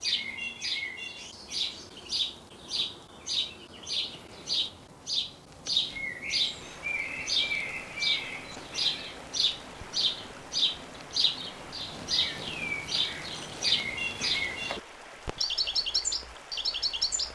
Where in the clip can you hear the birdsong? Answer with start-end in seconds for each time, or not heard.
0.0-17.2.